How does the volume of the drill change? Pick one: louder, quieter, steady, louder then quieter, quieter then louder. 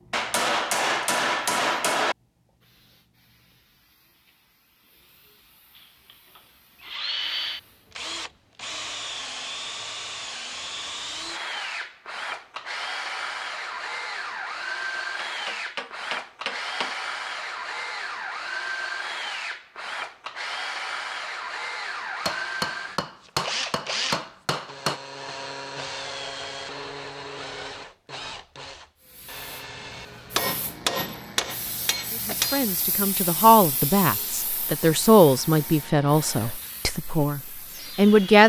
quieter.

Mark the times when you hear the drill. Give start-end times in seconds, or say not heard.
5.8-38.4.